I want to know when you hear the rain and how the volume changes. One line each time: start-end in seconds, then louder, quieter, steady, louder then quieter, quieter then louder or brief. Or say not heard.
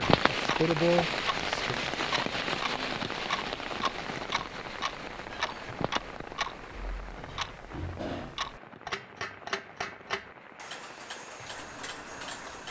0.0-12.6 quieter.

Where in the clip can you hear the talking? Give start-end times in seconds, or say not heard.
0.2-1.8.